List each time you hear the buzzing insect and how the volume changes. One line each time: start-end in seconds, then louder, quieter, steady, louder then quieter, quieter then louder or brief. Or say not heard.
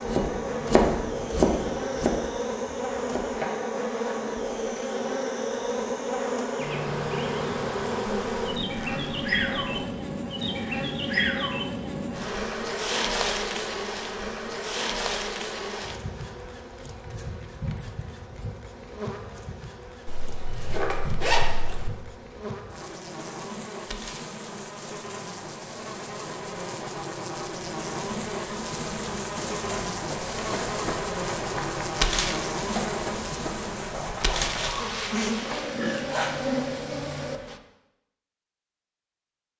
0.0-37.6 quieter then louder.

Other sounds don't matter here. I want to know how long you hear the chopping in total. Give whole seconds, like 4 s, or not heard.
4 s.